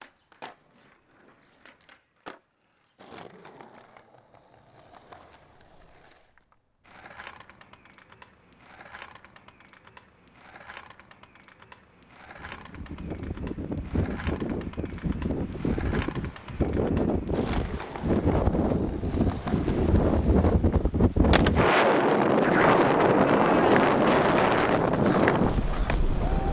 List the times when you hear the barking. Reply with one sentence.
You can't hear the barking here.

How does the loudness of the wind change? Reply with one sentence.
The volume of the wind goes up.